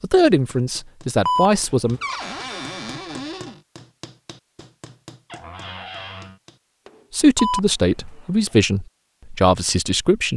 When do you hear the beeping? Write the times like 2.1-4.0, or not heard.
1.2-2.0, 7.3-8.1.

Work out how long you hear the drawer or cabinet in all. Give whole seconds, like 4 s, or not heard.
3 s.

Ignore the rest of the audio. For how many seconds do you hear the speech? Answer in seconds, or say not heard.
5 s.